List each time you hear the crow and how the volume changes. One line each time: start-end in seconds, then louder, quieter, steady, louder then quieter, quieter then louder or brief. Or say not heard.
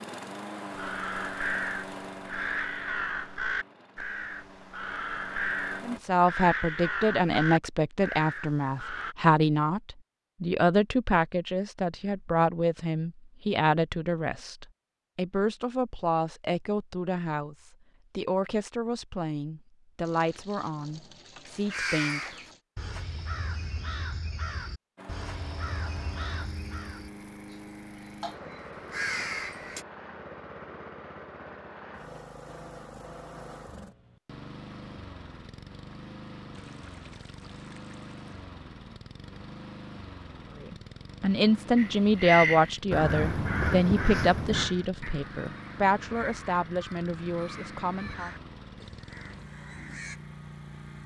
0.8-9.2 steady
21.4-29.9 quieter then louder
41.8-50.2 quieter.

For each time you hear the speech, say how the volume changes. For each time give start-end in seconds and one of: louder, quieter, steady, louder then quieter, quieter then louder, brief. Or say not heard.
5.8-22.4 quieter
40.6-48.3 quieter.